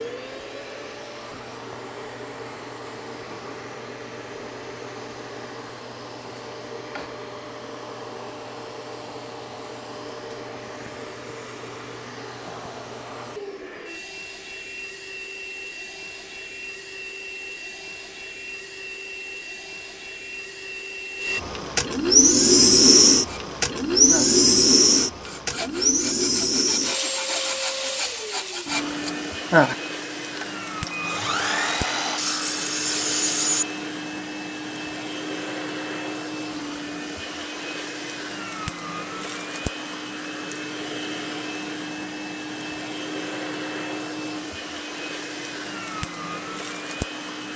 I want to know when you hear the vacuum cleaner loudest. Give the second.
23 s.